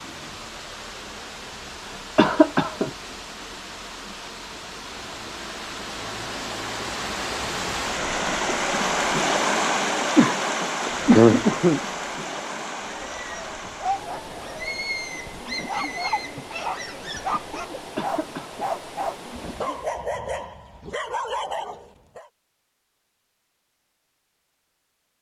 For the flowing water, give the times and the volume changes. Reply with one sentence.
You can hear the flowing water from 0.0 to 20.1 s, getting louder then quieter.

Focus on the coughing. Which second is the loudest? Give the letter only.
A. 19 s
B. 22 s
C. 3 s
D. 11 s
D.